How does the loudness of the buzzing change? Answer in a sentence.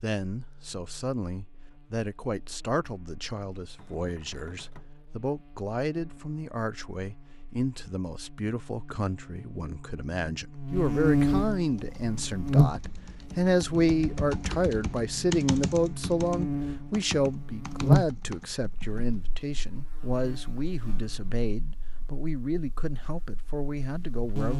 The volume of the buzzing goes up, then down.